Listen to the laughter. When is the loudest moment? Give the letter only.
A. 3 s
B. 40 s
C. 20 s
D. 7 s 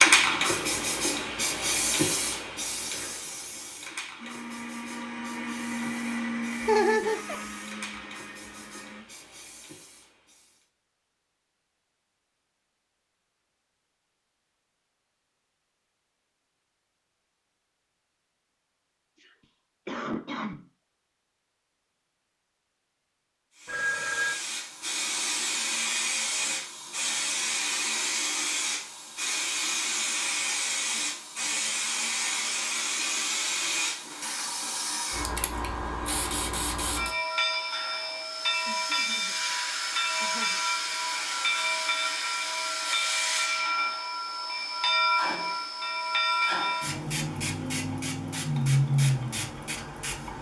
D.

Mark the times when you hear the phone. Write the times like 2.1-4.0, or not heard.
23.6-24.4.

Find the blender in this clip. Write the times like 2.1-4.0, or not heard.
4.2-9.1.